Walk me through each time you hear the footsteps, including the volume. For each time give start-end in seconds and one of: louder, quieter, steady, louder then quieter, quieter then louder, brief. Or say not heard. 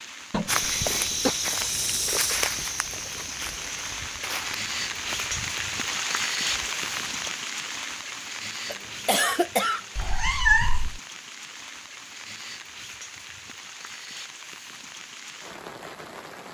0.5-7.2 quieter.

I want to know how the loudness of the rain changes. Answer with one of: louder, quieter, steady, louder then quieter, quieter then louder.
louder then quieter.